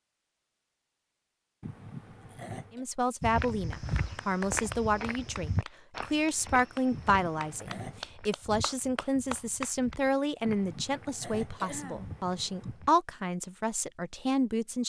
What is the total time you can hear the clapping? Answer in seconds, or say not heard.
6 s.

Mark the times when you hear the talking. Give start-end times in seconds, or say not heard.
2.7-14.8.